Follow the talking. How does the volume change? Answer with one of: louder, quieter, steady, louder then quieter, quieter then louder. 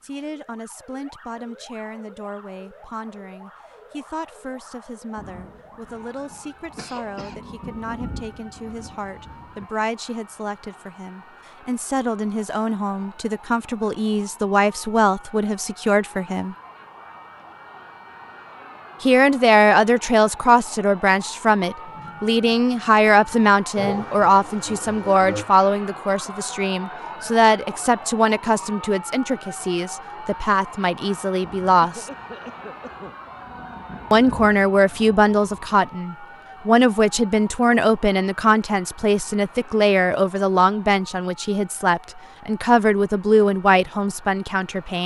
louder.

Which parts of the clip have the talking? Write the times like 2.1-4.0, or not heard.
0.0-16.6, 19.0-32.0, 34.1-45.0.